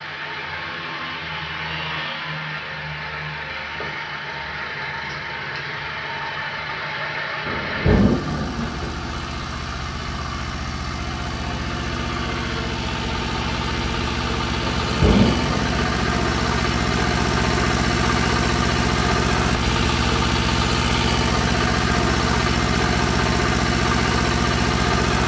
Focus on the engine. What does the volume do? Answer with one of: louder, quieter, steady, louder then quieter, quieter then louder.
louder.